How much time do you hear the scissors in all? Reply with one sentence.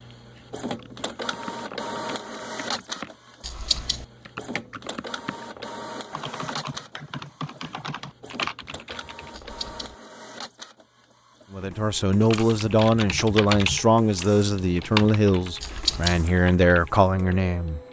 The scissors can be heard for 2 seconds in total.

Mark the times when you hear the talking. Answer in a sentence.
You can hear the talking from 11.5 to 17.8 s.